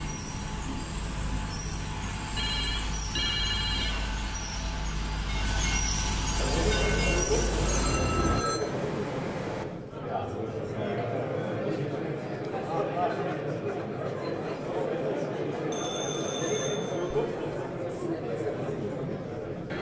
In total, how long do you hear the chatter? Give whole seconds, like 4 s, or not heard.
13 s.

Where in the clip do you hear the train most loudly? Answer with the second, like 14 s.
7 s.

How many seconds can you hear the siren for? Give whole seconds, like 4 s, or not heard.
not heard.